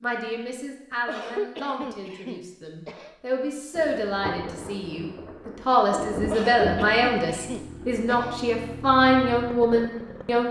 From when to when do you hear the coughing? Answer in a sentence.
You can hear the coughing from 1.1 to 3.1 s and from 6.3 to 8.4 s.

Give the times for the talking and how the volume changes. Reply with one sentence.
The talking can be heard from 0.0 to 10.4 s, getting louder.